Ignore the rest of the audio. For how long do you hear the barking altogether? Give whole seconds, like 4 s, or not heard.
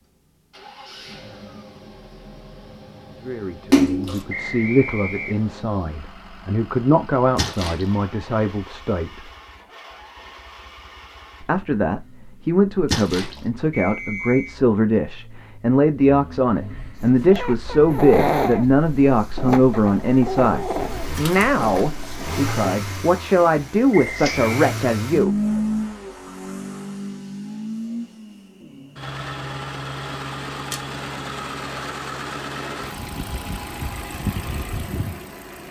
6 s.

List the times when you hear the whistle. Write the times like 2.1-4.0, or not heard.
4.2-5.6, 13.7-14.6, 23.9-24.6.